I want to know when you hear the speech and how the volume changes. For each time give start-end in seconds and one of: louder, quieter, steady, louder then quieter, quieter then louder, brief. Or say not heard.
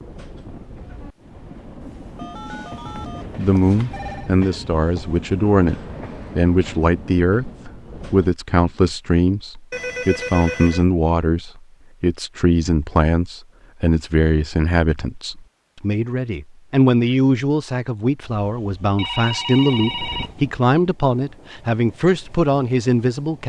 3.4-23.4 steady.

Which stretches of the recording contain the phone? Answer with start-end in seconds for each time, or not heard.
1.8-4.3, 9.7-10.8, 18.9-20.4.